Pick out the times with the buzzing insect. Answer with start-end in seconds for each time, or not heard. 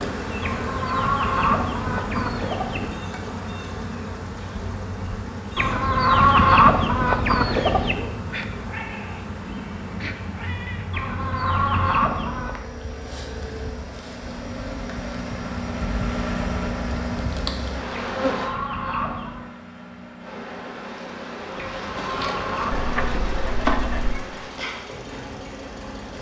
0.0-18.6, 20.2-26.1.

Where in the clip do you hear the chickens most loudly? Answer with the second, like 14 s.
7 s.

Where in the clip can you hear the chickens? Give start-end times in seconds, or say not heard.
0.4-3.0, 5.5-8.2, 10.9-12.6, 17.9-19.4, 21.6-23.1.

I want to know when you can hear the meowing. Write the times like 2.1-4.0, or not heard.
8.3-10.8, 22.7-24.2.